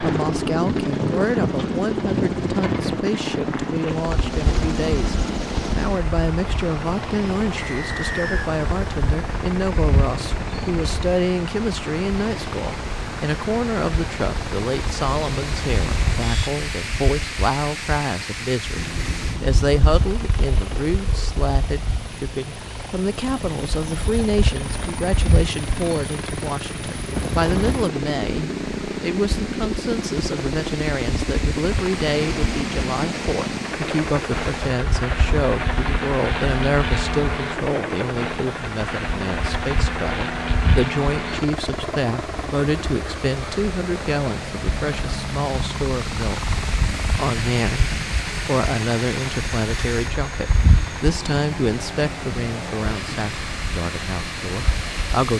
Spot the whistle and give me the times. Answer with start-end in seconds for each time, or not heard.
7.5-8.5.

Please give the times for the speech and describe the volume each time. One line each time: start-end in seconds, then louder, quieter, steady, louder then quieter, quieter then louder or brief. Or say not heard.
0.0-55.3 steady.